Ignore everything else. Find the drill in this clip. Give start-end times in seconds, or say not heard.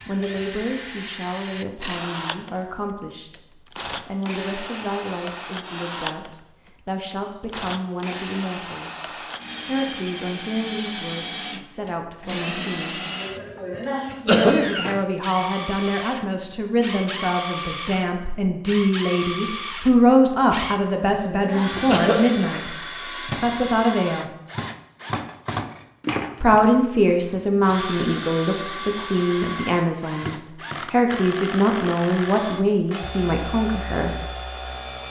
0.0-35.0.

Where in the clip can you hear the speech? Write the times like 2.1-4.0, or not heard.
0.1-9.1, 9.7-13.0, 14.2-22.8, 23.4-24.3, 26.4-34.1.